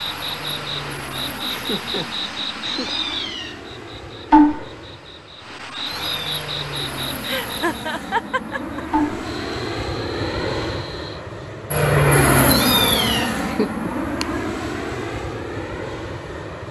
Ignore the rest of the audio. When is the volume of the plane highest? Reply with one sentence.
The volume of the plane peaks at 12 seconds.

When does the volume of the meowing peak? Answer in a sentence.
The loudest moment of the meowing is at 13 seconds.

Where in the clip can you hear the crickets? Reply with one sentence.
You can hear the crickets from 0.0 to 11.2 s.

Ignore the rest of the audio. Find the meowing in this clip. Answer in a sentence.
You can hear the meowing from 2.7 to 3.8 s, from 5.8 to 6.3 s and from 12.4 to 13.4 s.